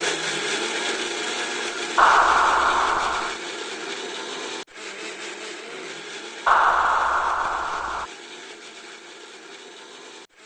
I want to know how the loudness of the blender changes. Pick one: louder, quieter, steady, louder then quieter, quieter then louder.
quieter.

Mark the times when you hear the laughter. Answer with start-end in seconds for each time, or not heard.
1.9-3.4, 6.5-8.1.